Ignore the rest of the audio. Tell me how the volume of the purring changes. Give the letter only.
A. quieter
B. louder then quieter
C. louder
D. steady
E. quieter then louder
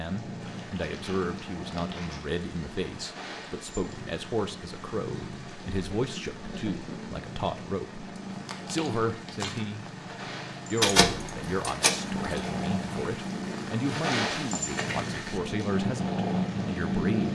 C.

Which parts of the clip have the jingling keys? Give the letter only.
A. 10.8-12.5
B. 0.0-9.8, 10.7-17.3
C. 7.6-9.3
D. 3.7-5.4
A.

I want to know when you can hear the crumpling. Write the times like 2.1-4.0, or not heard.
0.6-2.2, 8.3-9.7, 14.3-15.6.